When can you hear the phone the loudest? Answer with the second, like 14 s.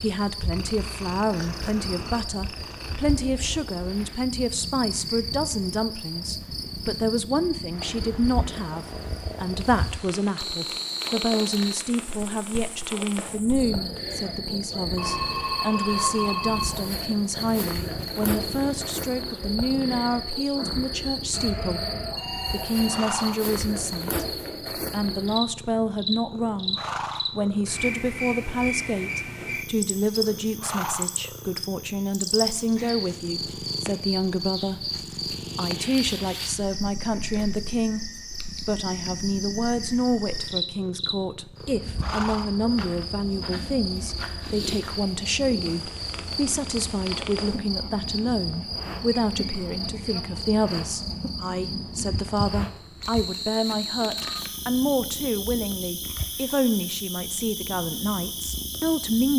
16 s.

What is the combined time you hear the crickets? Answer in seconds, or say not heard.
59 s.